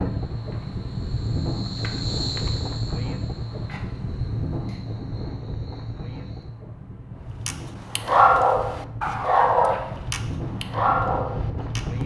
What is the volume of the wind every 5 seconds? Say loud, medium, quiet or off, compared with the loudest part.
loud, medium, loud.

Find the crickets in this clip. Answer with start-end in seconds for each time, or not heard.
0.0-6.5.